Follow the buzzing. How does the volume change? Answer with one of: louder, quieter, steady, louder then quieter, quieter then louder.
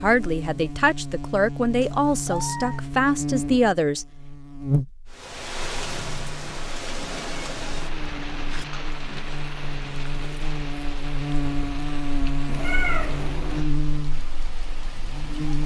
quieter then louder.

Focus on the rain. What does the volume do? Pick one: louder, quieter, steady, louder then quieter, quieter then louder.
quieter.